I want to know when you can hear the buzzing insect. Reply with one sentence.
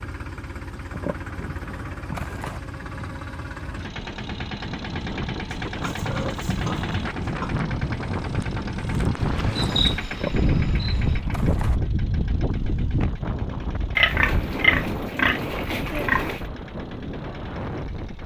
The buzzing insect can be heard from 9.2 to 11.2 s.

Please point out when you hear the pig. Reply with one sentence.
The pig can be heard from 0.9 to 2.6 s, from 5.7 to 7.5 s, from 10.1 to 11.8 s and from 13.9 to 16.4 s.